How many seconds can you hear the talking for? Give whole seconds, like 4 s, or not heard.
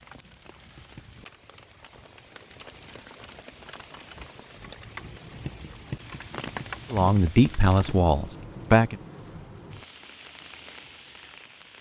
2 s.